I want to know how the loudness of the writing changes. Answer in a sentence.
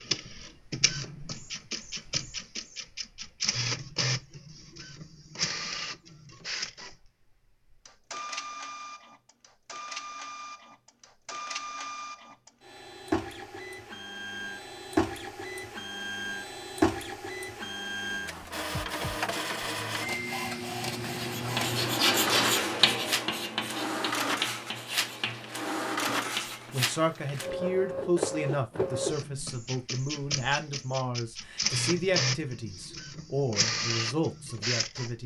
The volume of the writing goes down.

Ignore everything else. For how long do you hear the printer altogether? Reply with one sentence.
The printer can be heard for 35 seconds in total.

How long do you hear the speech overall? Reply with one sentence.
The speech can be heard for 9 seconds in total.